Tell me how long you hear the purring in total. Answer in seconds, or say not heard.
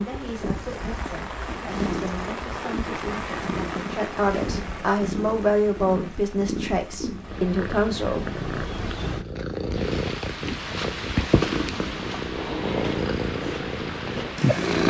15 s.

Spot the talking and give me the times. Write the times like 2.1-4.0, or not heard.
0.0-8.3.